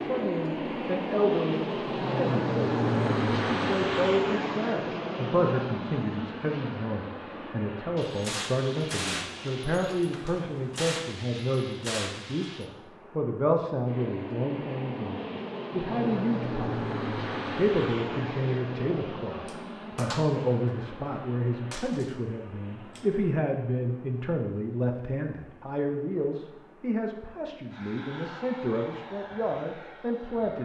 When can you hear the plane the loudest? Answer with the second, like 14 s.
3 s.